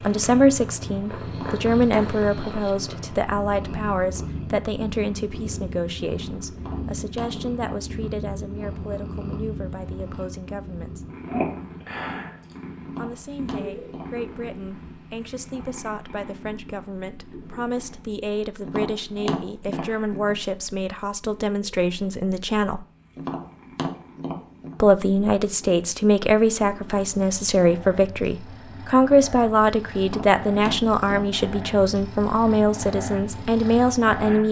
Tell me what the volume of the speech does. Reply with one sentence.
The volume of the speech goes down, then up.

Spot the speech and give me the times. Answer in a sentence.
The speech can be heard from 0.0 to 11.1 s, from 12.9 to 22.9 s and from 24.8 to 34.4 s.